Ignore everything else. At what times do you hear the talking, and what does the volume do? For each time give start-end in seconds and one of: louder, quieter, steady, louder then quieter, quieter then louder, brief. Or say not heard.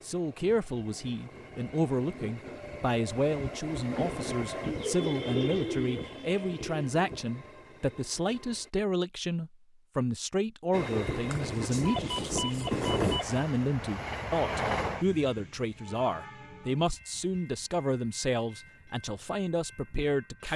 0.0-20.5 steady.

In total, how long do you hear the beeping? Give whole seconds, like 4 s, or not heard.
2 s.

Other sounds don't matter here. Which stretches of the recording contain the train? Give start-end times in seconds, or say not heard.
0.0-8.7, 10.7-20.5.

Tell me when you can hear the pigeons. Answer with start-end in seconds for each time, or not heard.
4.6-7.0.